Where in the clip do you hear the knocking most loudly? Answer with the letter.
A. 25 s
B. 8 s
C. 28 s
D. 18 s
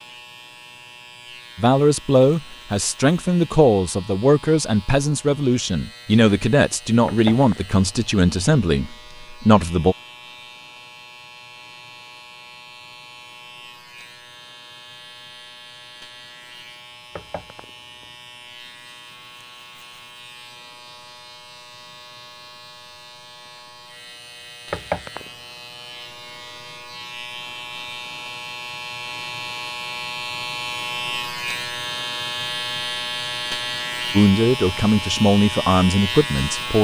A.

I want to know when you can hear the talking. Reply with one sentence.
The talking can be heard from 1.6 to 9.9 s and from 34.1 to 36.7 s.